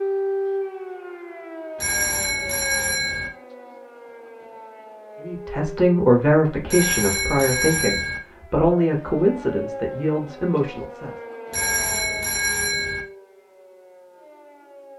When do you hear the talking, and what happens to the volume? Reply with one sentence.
The talking can be heard from 5.2 to 11.2 s, getting quieter.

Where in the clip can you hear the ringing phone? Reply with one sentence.
The ringing phone can be heard from 1.8 to 3.3 s, from 6.7 to 8.2 s and from 11.5 to 13.1 s.